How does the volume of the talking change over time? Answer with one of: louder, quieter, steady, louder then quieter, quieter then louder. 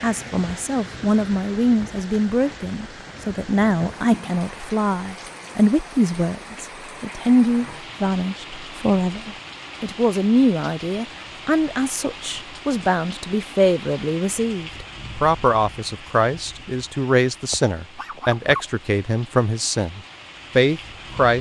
steady.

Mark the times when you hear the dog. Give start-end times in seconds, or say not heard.
17.5-18.7.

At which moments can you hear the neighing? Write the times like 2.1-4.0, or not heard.
not heard.